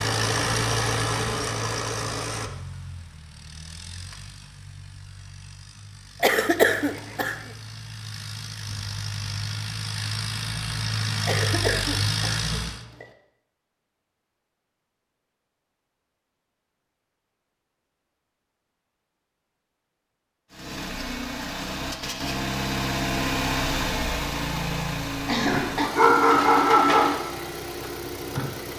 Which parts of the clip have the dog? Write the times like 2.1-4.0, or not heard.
25.8-27.2.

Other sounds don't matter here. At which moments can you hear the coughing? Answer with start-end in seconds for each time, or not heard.
6.2-7.3, 11.2-13.1, 25.2-25.9.